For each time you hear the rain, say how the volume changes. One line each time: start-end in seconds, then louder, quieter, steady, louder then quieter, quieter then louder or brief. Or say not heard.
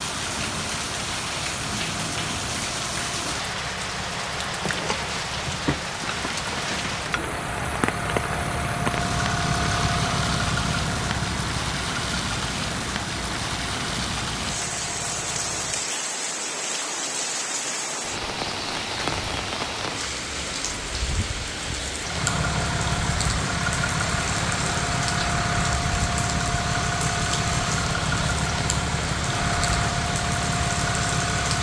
0.0-31.5 steady.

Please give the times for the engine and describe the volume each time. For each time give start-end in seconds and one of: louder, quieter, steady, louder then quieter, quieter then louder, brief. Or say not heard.
0.0-15.9 louder then quieter
22.0-31.5 steady.